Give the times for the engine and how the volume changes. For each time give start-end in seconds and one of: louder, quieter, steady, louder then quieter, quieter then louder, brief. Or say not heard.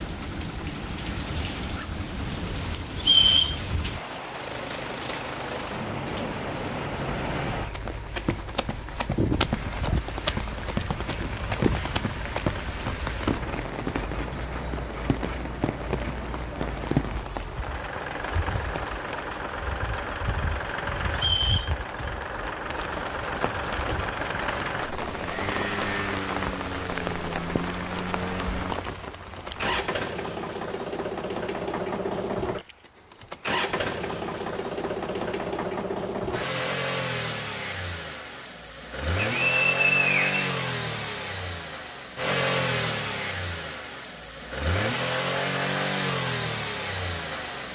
0.2-47.7 louder.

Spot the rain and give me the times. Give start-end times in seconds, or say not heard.
0.0-29.8.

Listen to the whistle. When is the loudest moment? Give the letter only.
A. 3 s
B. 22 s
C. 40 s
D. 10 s
A.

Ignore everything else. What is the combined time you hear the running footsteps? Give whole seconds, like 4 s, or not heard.
6 s.